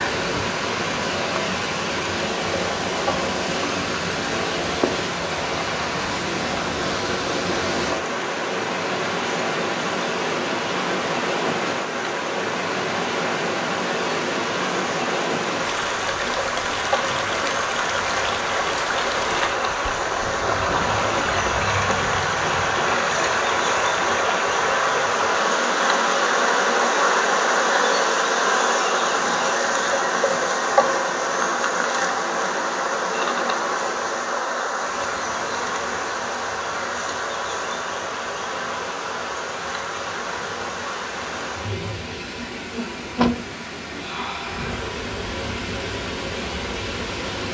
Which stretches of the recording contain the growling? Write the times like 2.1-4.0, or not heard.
not heard.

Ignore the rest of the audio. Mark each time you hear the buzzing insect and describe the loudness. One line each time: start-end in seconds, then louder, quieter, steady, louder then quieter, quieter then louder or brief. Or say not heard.
0.0-47.4 louder then quieter.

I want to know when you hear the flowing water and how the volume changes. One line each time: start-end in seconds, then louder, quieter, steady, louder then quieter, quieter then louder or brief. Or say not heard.
0.0-47.4 quieter.